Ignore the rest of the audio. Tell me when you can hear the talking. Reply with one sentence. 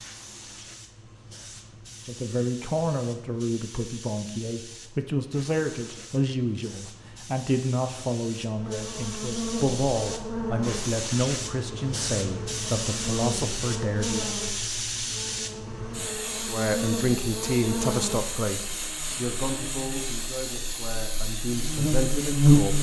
You can hear the talking from 2.0 to 14.3 s and from 16.4 to 22.7 s.